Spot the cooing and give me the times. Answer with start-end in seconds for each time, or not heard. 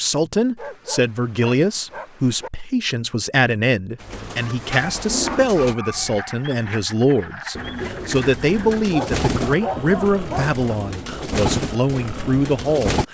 4.0-5.8, 7.5-13.1.